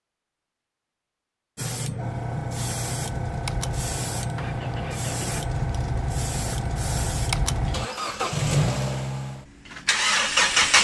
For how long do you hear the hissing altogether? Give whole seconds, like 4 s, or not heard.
6 s.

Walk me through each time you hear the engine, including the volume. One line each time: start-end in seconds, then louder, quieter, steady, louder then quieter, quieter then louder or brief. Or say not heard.
3.0-10.7 louder.